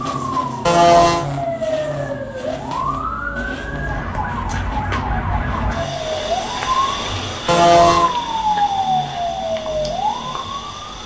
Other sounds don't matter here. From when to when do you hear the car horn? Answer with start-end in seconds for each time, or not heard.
0.7-1.2, 7.5-8.1.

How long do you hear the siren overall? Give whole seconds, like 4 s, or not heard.
11 s.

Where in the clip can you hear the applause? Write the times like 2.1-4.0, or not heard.
not heard.